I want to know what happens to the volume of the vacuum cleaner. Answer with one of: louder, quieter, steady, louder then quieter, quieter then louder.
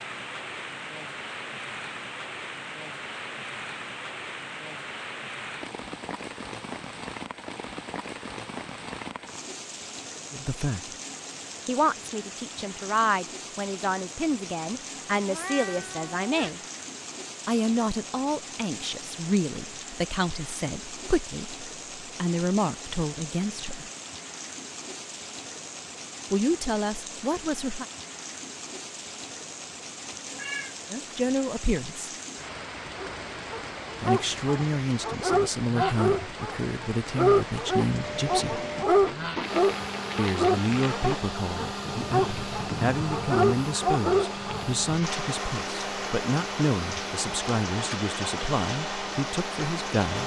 steady.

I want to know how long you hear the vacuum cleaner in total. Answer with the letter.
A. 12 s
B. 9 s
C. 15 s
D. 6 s
A.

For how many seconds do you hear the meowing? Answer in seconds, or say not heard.
2 s.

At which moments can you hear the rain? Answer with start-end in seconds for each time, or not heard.
0.0-50.2.